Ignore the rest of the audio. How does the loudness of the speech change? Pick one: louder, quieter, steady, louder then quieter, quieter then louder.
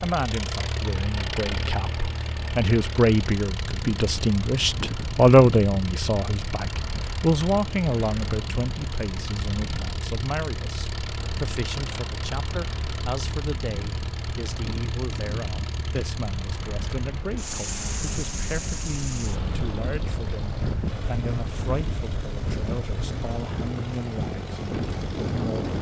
quieter.